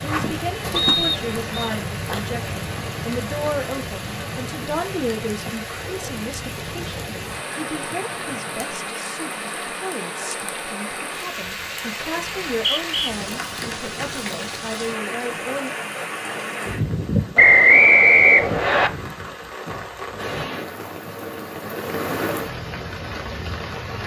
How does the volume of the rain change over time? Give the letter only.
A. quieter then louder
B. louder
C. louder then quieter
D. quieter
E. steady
E.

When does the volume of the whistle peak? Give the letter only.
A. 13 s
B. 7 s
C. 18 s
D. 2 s
C.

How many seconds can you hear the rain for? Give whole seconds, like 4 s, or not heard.
24 s.